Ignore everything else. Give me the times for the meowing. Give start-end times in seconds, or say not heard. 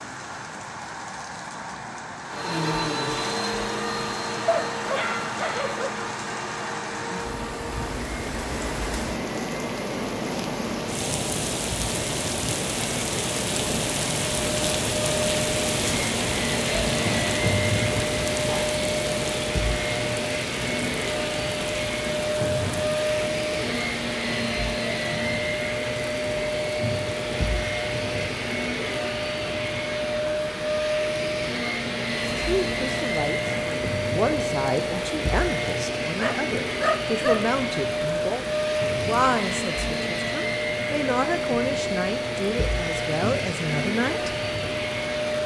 not heard.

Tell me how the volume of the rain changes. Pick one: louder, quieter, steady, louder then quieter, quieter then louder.
louder then quieter.